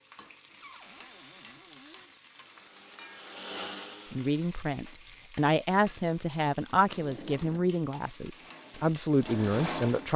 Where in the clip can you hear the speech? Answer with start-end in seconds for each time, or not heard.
4.1-10.1.